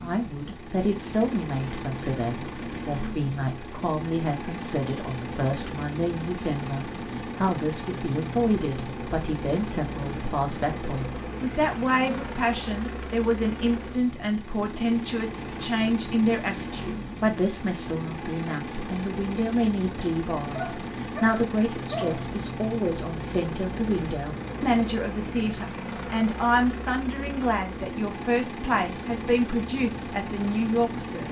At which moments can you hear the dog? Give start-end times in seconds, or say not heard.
20.5-22.2.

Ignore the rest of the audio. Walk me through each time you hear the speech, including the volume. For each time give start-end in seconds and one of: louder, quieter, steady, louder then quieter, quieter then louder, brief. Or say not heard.
0.0-31.2 steady.